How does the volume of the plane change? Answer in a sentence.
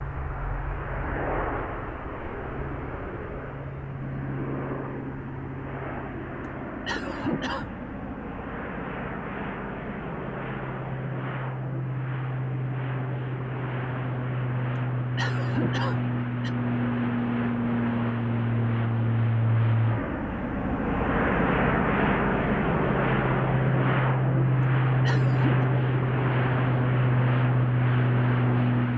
The loudness of the plane goes up.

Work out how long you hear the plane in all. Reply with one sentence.
The plane can be heard for 29 seconds in total.